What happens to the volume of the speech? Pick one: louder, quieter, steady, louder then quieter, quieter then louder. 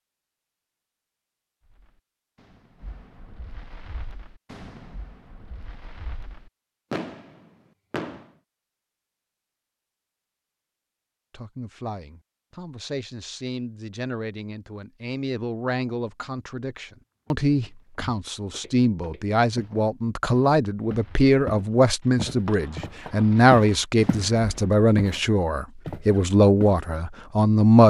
louder.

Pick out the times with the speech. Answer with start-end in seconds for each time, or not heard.
11.3-27.8.